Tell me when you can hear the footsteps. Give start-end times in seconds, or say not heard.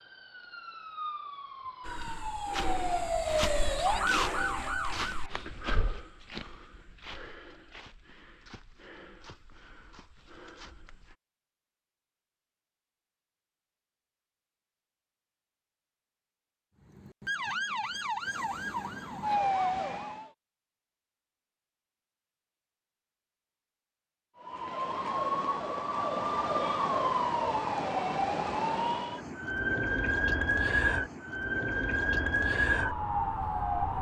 1.9-11.2.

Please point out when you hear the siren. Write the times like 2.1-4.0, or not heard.
0.0-5.5, 16.9-20.3, 24.4-33.9.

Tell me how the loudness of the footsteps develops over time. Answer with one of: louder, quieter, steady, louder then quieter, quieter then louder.
quieter.